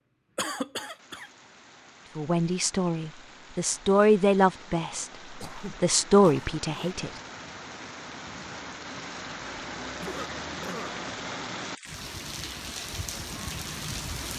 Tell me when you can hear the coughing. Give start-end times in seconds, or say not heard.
0.3-1.3, 5.4-7.0, 10.0-11.0.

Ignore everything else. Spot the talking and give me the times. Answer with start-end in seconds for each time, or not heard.
2.1-7.1.